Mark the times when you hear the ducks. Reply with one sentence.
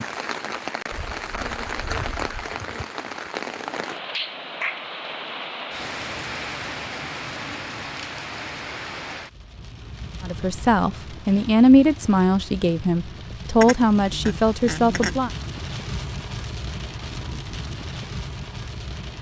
The ducks can be heard from 0.9 to 2.5 s and from 13.6 to 15.2 s.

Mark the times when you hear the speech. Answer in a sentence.
The speech can be heard from 10.2 to 15.3 s.